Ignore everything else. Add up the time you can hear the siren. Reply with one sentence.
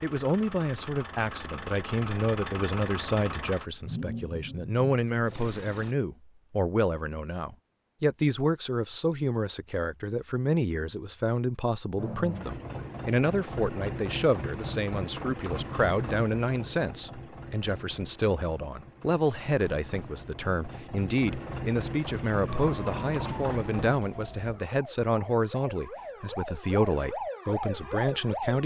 The siren can be heard for 6 seconds in total.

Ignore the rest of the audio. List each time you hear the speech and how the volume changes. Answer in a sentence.
You can hear the speech from 0.0 to 28.6 s, at a steady volume.